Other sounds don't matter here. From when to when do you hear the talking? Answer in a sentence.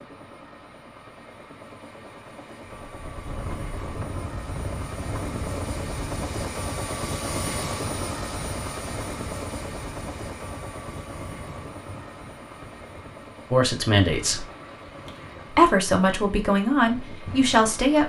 You can hear the talking from 13.5 to 14.4 s and from 15.6 to 18.0 s.